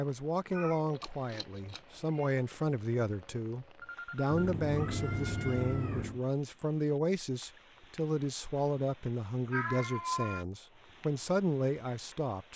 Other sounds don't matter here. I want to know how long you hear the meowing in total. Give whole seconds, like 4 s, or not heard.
5 s.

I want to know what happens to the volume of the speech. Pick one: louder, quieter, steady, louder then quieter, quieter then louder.
steady.